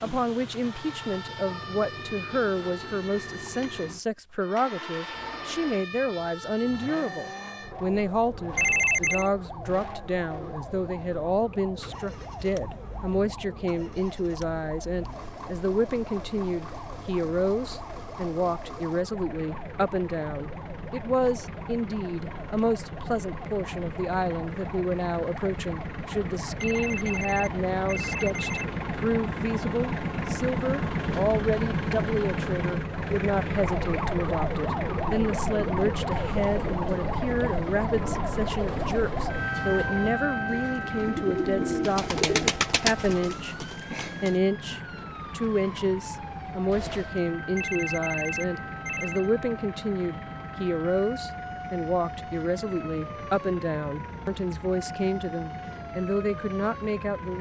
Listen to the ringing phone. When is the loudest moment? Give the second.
9 s.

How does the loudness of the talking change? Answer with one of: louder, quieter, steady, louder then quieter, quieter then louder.
steady.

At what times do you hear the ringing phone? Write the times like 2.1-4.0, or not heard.
8.6-9.3, 26.6-28.6, 47.5-49.2.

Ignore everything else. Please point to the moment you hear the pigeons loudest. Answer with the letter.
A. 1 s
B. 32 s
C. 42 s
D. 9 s
C.